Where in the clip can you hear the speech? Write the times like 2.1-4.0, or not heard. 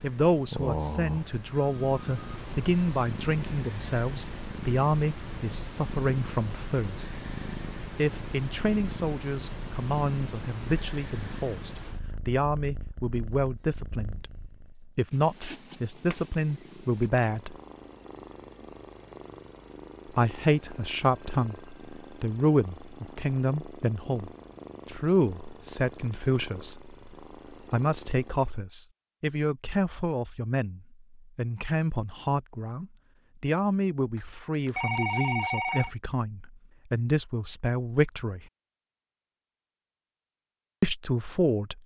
0.0-7.1, 8.0-17.6, 20.1-38.4, 40.8-41.8.